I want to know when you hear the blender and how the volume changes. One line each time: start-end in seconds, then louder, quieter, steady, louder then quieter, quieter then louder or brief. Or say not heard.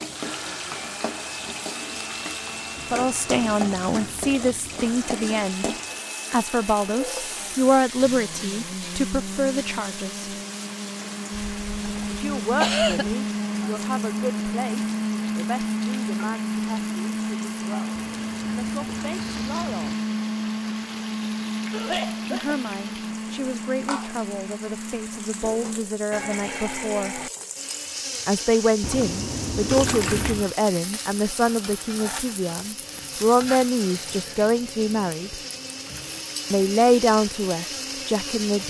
0.0-38.6 louder then quieter.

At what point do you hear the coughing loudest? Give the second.
13 s.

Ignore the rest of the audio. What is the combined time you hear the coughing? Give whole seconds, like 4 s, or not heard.
3 s.